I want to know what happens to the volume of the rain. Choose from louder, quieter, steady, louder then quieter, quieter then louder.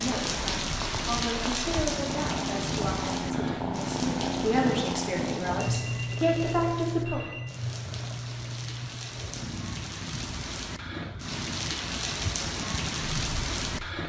quieter then louder.